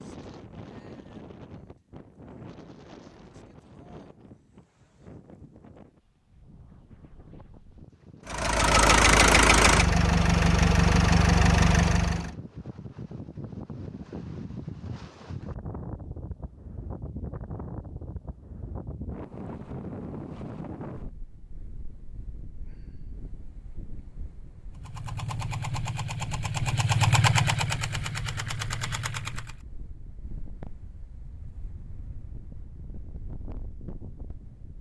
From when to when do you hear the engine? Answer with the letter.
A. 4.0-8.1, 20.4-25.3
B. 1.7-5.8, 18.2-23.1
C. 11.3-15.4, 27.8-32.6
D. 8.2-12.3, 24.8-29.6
D.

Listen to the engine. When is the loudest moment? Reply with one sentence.
The volume of the engine peaks at 9 seconds.